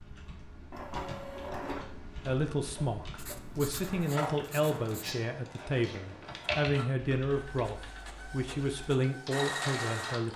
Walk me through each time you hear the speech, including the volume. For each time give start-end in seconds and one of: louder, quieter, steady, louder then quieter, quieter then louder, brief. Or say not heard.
2.2-10.3 steady.